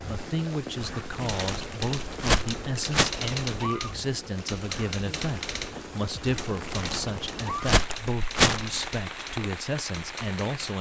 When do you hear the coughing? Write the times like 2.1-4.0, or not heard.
not heard.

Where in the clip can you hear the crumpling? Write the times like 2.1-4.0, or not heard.
0.8-3.1, 6.2-8.8.